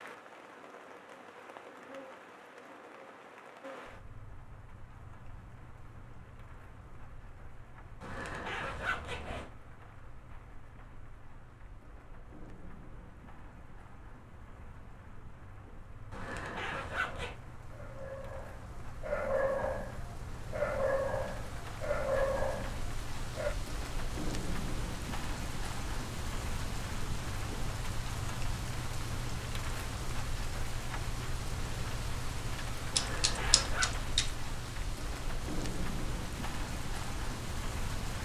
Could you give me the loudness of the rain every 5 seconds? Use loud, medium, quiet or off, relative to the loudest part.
medium, quiet, quiet, medium, loud, loud, loud, loud.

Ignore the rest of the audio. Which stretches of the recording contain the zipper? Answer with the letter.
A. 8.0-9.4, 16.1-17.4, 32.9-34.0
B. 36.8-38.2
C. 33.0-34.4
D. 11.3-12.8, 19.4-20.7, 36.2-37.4
A.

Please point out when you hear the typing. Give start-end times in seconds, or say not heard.
33.0-34.4.